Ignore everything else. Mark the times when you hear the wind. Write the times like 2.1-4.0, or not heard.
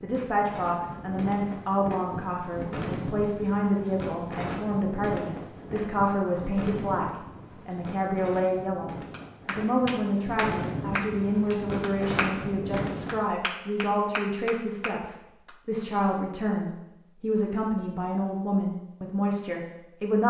0.0-13.2.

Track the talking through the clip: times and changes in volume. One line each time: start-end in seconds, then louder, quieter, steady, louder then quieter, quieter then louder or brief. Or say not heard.
0.0-20.2 steady.